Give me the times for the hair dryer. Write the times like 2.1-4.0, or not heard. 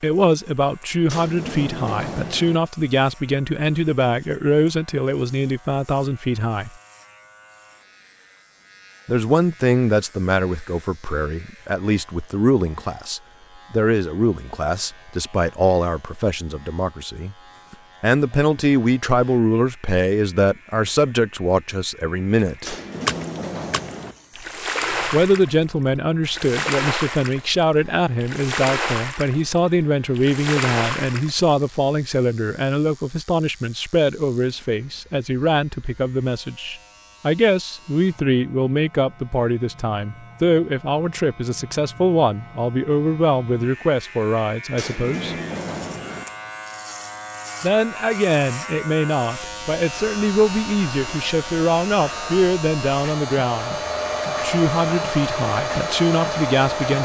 50.0-57.0.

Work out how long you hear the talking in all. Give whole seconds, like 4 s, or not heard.
49 s.